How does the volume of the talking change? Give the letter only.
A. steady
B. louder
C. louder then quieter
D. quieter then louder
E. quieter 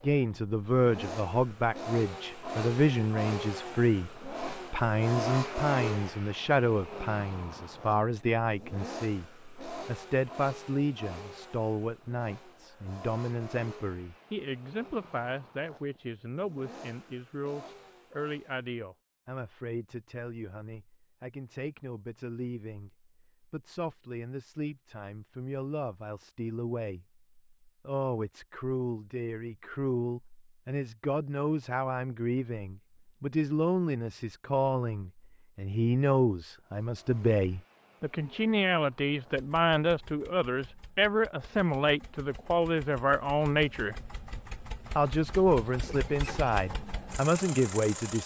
D.